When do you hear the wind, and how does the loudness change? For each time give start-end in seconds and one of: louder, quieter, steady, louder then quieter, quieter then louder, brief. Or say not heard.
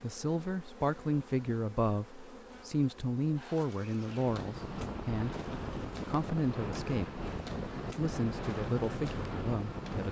4.2-10.0 steady.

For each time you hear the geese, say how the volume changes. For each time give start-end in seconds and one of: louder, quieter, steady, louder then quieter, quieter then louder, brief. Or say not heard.
not heard.